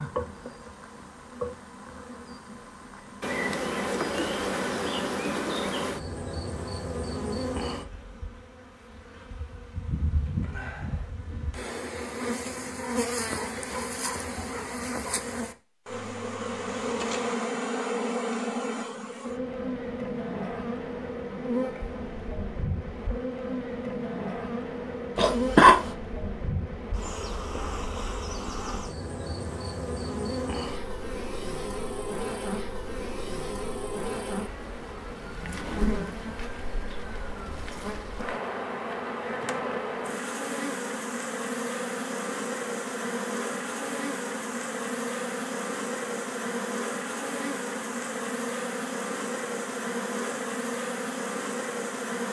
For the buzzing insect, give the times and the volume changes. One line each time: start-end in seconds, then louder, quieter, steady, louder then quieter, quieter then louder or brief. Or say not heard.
0.0-52.2 steady.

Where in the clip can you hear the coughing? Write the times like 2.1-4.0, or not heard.
25.1-25.9.